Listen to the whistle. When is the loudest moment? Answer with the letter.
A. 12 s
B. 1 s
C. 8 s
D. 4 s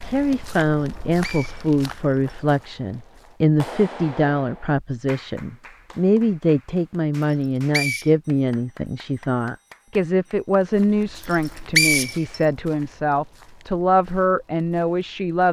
A.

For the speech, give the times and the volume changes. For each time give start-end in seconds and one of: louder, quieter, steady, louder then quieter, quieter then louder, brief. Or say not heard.
0.0-15.4 steady.